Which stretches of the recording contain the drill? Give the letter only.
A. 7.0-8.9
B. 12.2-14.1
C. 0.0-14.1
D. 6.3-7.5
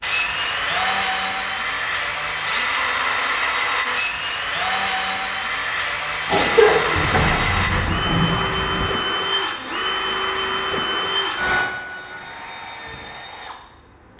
C.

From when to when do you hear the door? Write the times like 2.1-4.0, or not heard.
7.0-8.9.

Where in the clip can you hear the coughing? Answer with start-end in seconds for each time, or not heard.
6.3-7.5.